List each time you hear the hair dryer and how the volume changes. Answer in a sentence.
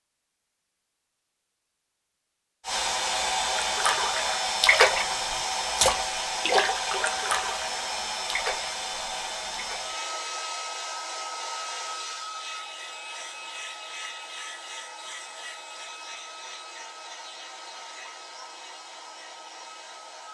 The hair dryer can be heard from 2.6 to 20.2 s, getting quieter.